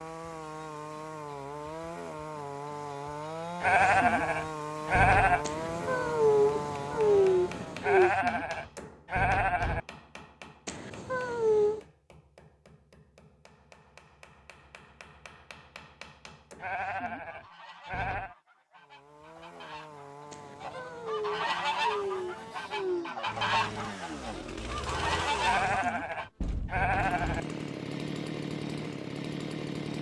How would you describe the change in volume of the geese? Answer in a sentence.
The volume of the geese goes up.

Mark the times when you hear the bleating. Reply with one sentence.
You can hear the bleating from 3.6 to 5.5 s, from 7.8 to 9.8 s, from 16.6 to 18.4 s and from 25.4 to 27.4 s.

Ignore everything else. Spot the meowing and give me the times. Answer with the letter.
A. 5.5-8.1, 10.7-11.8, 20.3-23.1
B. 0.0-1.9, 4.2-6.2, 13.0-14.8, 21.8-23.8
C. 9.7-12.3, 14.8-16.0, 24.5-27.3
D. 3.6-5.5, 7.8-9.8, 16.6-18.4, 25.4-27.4
A.